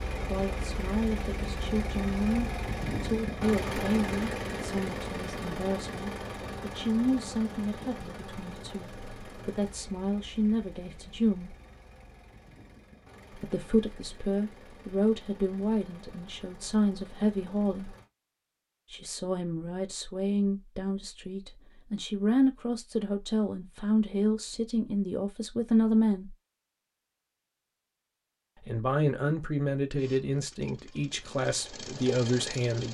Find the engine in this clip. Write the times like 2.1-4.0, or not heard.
0.0-18.1, 29.9-32.9.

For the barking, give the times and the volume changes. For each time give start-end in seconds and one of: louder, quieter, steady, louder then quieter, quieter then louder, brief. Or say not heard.
not heard.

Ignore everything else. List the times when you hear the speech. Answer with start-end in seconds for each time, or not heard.
0.1-11.6, 13.3-17.9, 18.9-26.4, 28.6-32.9.